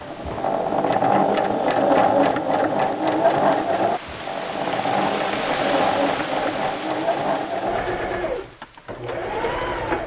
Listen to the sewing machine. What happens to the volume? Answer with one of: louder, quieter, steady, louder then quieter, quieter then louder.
quieter.